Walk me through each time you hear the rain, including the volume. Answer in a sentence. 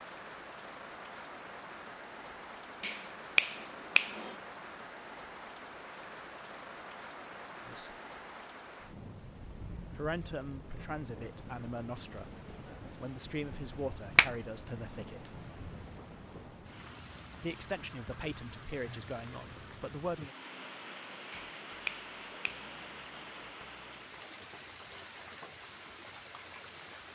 You can hear the rain from 0.0 to 27.1 s, at a steady volume.